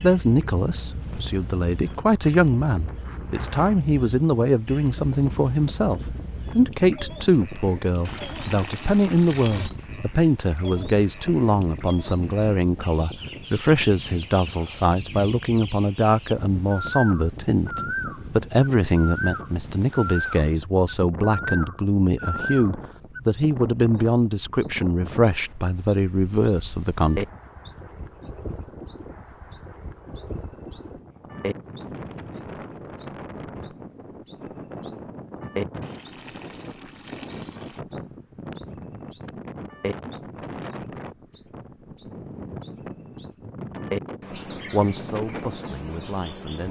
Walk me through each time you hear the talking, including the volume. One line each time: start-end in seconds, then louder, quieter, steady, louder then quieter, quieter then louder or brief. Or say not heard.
0.0-27.2 steady
44.7-46.6 brief.